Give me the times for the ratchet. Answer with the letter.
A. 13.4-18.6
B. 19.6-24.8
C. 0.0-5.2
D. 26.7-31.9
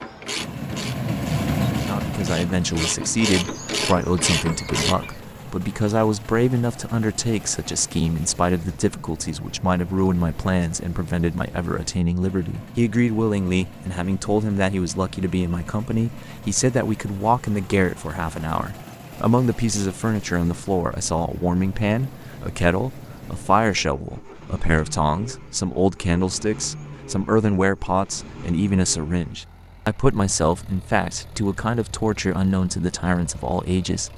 C.